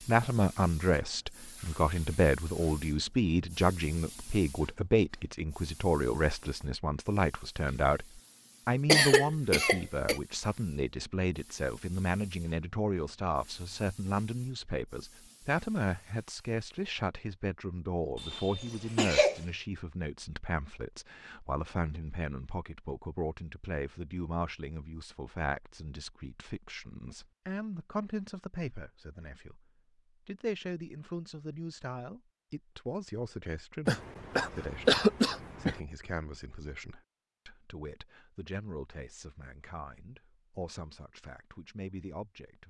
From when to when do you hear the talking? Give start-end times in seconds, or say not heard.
0.1-29.6, 30.2-42.6.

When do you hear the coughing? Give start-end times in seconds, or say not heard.
8.8-10.2, 18.1-19.4, 33.9-35.8.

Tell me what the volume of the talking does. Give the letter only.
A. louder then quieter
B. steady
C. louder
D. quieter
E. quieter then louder
D.